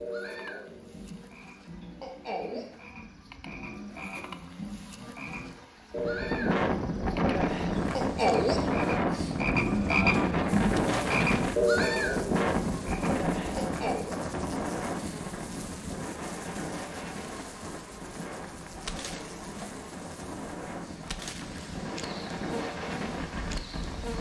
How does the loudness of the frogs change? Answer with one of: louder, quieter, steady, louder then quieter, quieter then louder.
louder.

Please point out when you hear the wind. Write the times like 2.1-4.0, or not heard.
6.0-24.1.